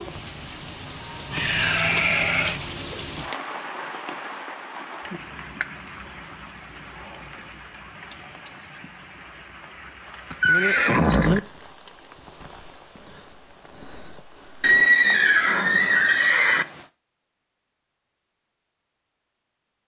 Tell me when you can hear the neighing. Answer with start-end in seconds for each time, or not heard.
1.3-2.6, 10.3-11.4, 14.6-16.6.